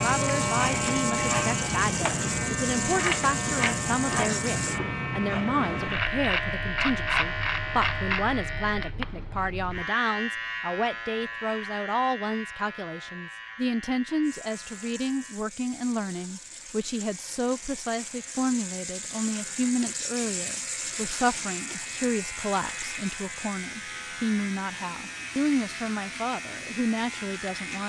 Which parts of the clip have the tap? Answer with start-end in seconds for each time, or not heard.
0.0-4.8, 14.2-27.8.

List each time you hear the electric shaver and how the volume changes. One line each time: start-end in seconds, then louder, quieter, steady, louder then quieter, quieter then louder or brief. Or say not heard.
0.0-27.8 quieter then louder.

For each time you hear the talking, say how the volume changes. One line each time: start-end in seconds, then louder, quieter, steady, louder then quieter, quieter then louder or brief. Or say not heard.
0.0-27.8 steady.